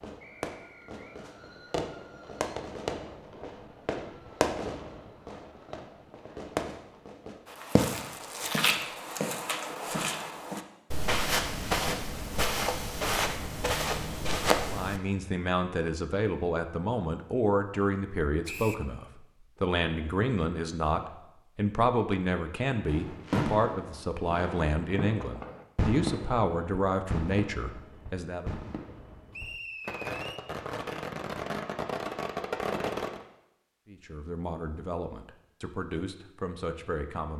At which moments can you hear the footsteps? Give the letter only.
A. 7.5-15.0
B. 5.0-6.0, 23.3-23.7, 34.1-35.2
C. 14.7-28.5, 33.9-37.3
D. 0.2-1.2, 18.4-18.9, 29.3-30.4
A.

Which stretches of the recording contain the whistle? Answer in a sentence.
The whistle can be heard from 0.2 to 1.2 s, from 18.4 to 18.9 s and from 29.3 to 30.4 s.